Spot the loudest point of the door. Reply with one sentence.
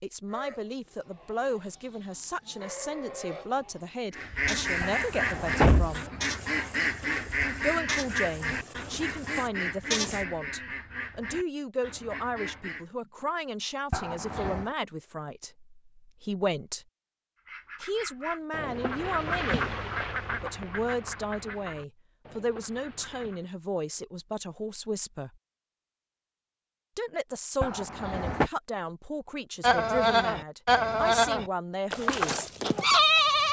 The loudest moment of the door is at 6 seconds.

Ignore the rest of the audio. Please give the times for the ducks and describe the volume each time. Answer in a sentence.
You can hear the ducks from 4.1 to 12.8 s, getting quieter; and from 17.4 to 23.5 s, getting louder then quieter.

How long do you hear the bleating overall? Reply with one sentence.
You can hear the bleating for 14 seconds altogether.